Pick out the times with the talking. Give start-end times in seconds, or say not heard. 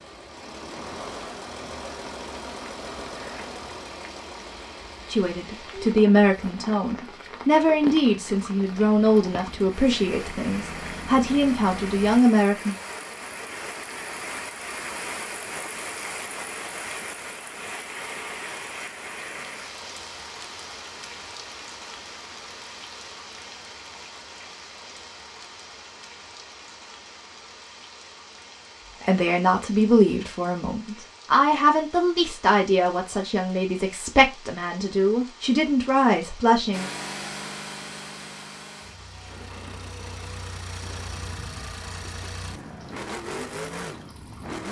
5.1-12.8, 29.0-36.9.